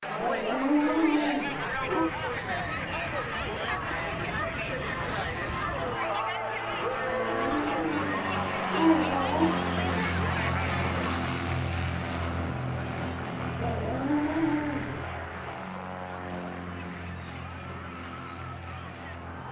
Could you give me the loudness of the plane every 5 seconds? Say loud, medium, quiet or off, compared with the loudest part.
medium, loud, loud, medium.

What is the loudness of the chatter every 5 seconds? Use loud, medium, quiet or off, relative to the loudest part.
loud, loud, loud, quiet.